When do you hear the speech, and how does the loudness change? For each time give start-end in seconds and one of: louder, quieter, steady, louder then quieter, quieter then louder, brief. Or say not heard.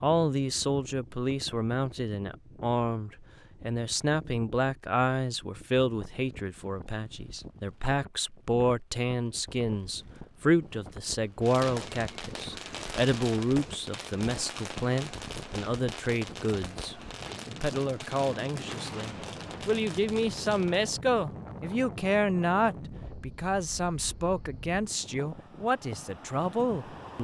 0.0-27.2 steady.